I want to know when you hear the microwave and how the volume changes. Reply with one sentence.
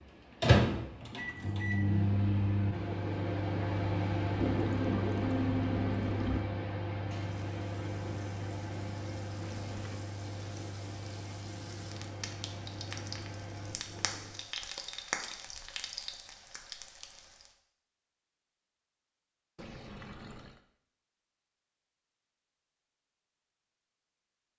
You can hear the microwave from 0.0 to 14.4 s, getting quieter.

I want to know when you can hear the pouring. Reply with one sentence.
You can hear the pouring from 4.5 to 6.4 s, from 9.4 to 10.1 s and from 19.6 to 20.6 s.